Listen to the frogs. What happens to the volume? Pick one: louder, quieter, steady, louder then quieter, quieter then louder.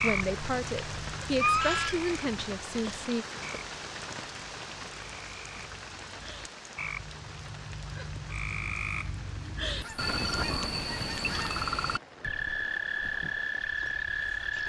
quieter then louder.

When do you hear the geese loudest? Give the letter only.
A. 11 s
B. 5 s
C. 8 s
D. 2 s
D.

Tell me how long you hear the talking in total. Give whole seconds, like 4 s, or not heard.
3 s.